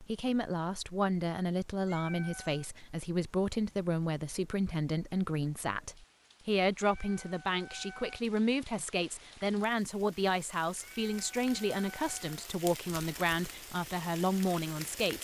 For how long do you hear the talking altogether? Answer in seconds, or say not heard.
15 s.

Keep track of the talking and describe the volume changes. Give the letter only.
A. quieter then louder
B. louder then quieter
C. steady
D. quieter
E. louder
C.